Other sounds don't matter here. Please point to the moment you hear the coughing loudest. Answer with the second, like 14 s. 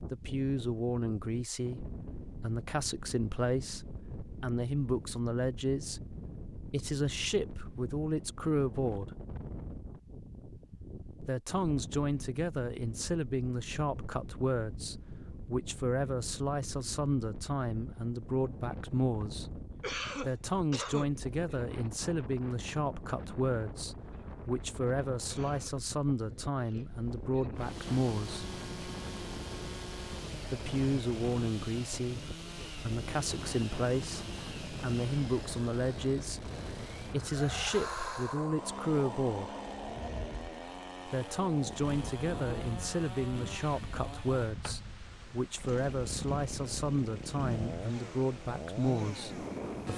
20 s.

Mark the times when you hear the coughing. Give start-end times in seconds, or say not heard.
19.8-21.1, 25.2-25.8.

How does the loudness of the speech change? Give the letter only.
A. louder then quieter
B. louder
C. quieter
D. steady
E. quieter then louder
D.